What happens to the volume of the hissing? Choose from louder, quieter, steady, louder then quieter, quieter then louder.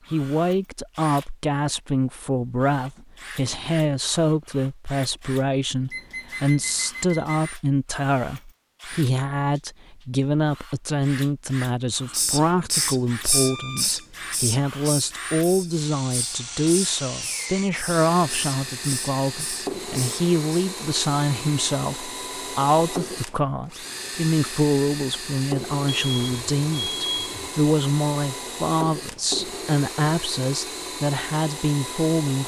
quieter.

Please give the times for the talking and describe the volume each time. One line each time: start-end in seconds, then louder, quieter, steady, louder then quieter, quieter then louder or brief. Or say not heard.
0.1-32.4 steady.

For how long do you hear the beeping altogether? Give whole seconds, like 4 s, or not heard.
4 s.